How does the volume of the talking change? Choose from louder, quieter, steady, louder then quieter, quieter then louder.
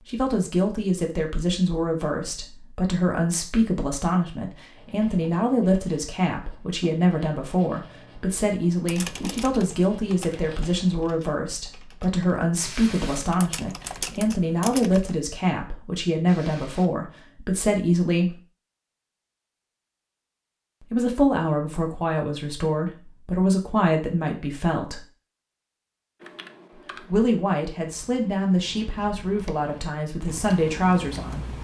steady.